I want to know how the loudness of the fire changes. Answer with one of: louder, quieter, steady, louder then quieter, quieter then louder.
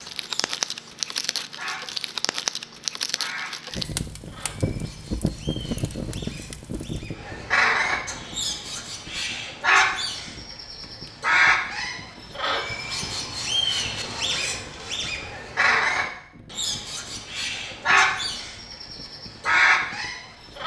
quieter.